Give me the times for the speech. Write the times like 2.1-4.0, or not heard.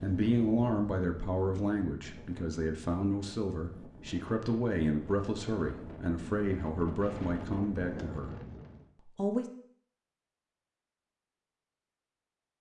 0.0-8.3, 9.0-9.4.